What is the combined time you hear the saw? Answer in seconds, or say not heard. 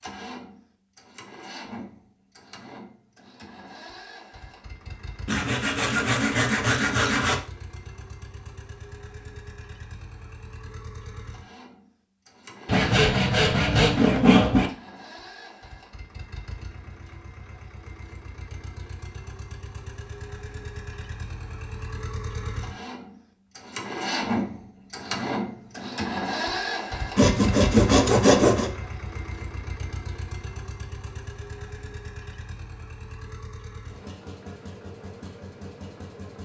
6 s.